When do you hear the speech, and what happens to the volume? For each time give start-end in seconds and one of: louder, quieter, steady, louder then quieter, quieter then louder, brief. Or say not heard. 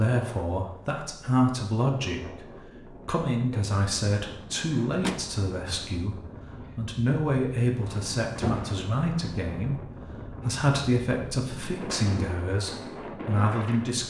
0.0-14.0 steady.